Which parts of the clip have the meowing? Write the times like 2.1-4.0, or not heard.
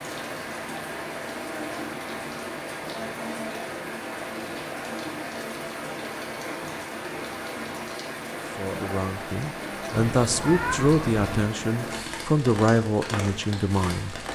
10.2-11.6.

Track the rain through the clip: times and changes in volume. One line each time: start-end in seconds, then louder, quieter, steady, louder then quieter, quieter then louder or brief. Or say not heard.
0.0-14.3 steady.